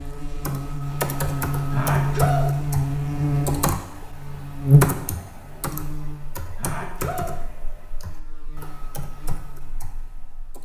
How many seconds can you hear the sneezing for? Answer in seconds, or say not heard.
2 s.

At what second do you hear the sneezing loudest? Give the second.
2 s.